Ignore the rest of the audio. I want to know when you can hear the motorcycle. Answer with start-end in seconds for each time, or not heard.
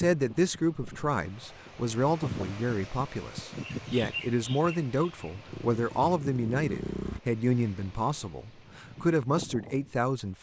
5.5-7.2.